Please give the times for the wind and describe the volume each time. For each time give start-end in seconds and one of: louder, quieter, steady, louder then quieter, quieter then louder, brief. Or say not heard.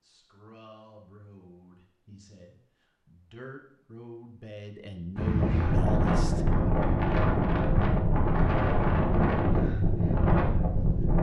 5.2-11.1 steady.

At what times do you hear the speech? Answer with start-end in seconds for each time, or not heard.
0.0-6.5.